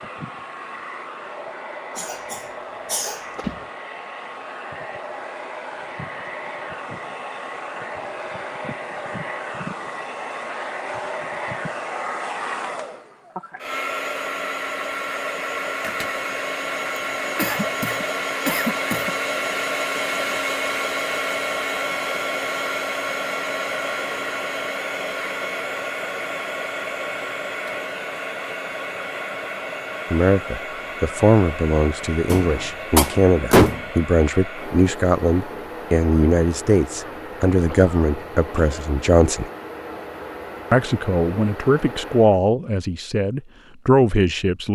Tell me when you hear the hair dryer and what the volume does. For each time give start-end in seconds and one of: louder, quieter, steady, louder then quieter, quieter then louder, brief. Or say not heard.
0.0-42.4 louder then quieter.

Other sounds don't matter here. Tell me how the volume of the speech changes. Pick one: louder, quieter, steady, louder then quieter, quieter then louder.
steady.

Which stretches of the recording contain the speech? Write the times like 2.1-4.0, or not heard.
30.1-39.5, 40.7-44.7.